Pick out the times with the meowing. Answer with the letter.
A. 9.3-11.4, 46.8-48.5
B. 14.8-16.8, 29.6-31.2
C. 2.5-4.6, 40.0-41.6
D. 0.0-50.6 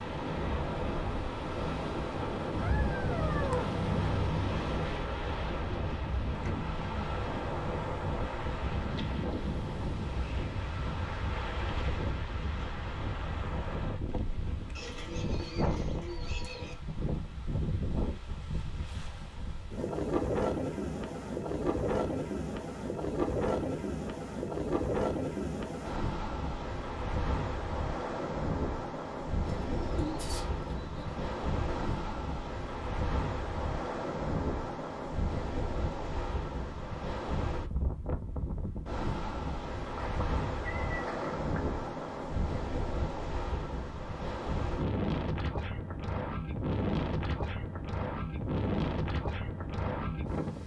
C.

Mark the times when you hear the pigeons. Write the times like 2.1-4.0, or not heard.
14.8-16.8, 29.6-31.2.